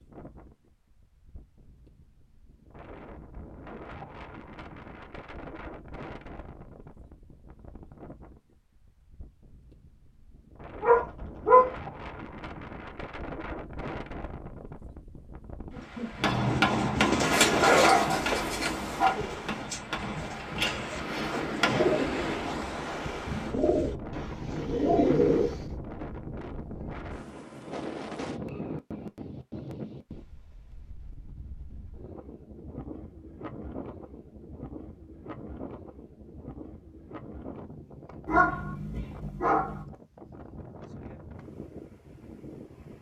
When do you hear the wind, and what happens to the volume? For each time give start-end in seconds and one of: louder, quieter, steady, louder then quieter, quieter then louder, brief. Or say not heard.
0.0-42.9 louder then quieter.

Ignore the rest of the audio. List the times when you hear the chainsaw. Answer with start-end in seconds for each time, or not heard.
not heard.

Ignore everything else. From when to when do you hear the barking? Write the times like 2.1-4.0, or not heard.
10.8-11.7, 17.2-19.1, 38.2-39.9.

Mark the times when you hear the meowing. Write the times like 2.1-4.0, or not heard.
not heard.